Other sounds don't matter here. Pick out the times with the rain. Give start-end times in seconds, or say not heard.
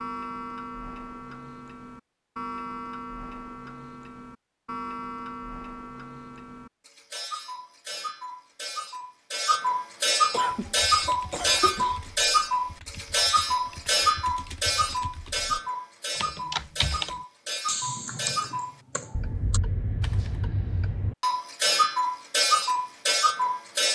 not heard.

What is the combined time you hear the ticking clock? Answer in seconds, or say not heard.
24 s.